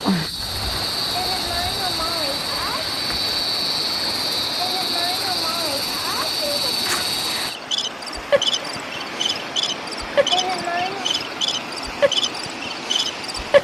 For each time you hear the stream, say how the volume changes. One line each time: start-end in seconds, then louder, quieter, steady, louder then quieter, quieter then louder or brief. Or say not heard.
0.0-13.5 steady.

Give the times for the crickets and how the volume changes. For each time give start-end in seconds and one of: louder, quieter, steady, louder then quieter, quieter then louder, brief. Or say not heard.
0.0-13.5 steady.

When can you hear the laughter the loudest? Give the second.
11 s.